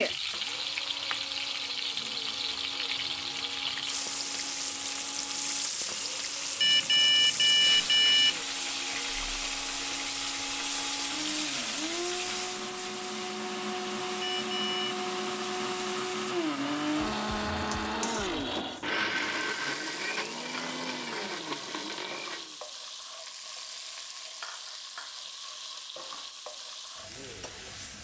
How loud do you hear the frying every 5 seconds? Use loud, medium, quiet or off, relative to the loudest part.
loud, loud, loud, medium, medium, medium.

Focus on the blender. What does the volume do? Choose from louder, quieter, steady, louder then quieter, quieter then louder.
louder.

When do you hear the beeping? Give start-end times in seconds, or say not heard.
6.6-8.4, 14.2-15.1.